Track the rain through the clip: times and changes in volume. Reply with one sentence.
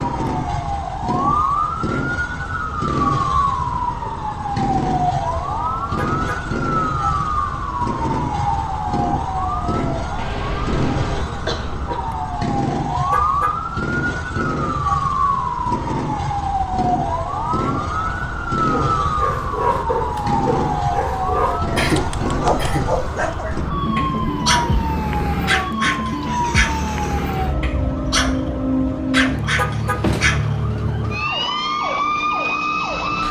The rain can't be heard in this clip.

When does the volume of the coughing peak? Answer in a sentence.
The loudest moment of the coughing is at 22 seconds.